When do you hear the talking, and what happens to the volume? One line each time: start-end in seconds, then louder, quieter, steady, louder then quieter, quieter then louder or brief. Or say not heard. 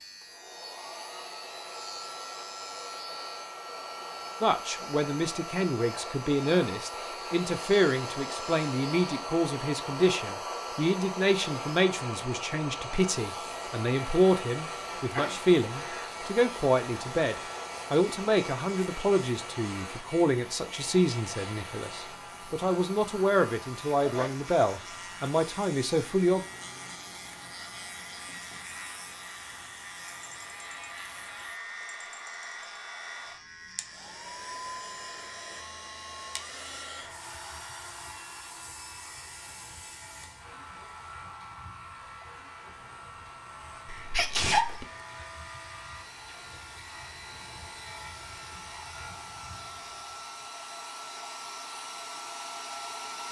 4.4-26.4 steady.